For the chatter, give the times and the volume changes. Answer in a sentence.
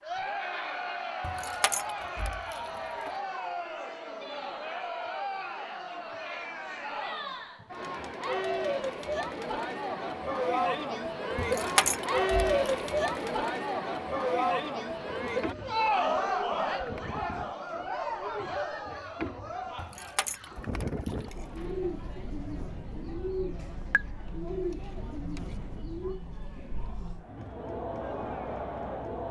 The chatter can be heard from 0.0 to 29.2 s, getting louder then quieter.